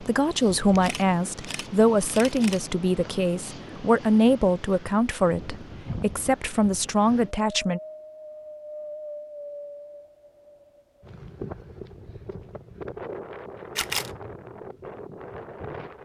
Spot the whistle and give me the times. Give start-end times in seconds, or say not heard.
not heard.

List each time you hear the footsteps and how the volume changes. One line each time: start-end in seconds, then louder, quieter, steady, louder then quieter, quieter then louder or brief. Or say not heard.
not heard.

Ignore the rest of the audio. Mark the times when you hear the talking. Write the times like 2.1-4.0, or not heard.
0.0-7.8.